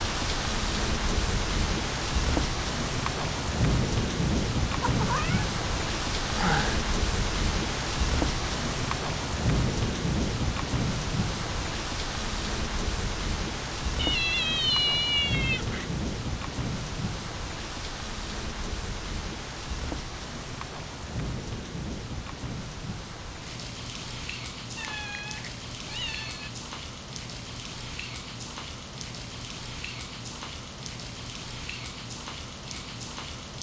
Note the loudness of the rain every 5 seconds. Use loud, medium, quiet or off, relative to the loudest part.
loud, loud, loud, medium, medium, medium, medium.